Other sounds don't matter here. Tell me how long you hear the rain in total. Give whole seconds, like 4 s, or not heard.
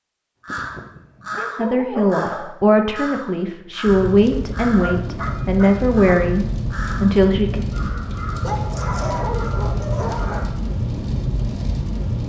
8 s.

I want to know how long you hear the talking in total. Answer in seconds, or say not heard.
6 s.